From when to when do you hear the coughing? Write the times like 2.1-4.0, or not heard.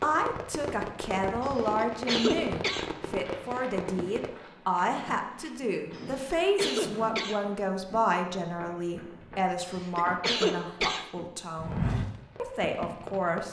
1.4-2.9, 6.0-7.4, 9.6-11.1.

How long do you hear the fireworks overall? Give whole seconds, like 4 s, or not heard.
6 s.